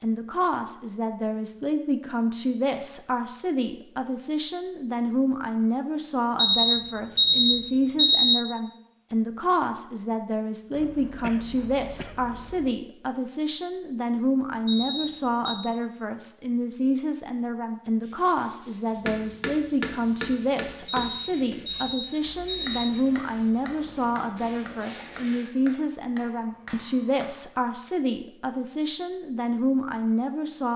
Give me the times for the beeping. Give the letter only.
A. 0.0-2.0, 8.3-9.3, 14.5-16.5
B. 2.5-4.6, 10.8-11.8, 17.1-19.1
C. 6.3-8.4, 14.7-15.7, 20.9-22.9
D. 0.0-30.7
C.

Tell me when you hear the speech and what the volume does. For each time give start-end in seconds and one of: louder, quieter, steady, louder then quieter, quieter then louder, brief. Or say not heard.
0.0-30.7 steady.